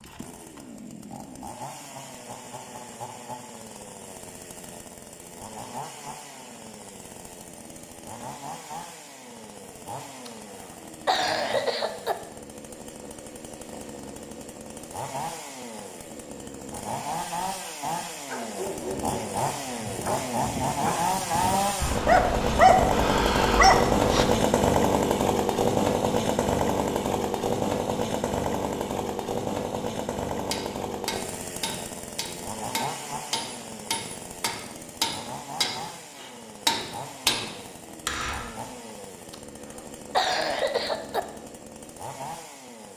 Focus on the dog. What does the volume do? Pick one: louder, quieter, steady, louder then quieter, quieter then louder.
louder.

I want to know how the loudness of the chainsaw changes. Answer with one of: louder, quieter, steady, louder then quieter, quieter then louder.
louder then quieter.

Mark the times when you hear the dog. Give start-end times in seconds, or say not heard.
18.2-24.4.